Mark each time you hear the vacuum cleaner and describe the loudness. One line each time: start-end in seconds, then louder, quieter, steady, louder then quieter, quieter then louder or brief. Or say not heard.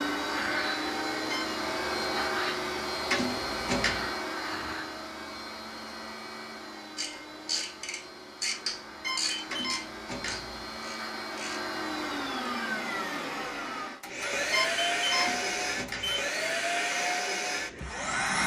0.0-18.4 quieter then louder.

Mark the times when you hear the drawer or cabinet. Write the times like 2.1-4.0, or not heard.
3.0-4.1, 9.4-10.7, 15.2-16.2.